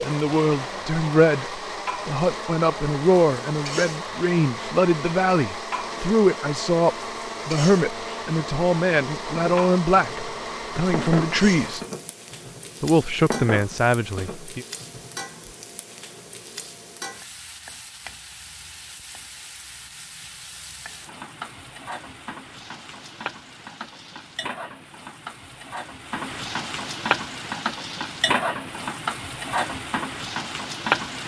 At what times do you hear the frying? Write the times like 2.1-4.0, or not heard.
0.0-31.2.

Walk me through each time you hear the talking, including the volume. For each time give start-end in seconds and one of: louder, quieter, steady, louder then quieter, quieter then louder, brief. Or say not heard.
0.0-11.8 steady
12.8-14.7 brief.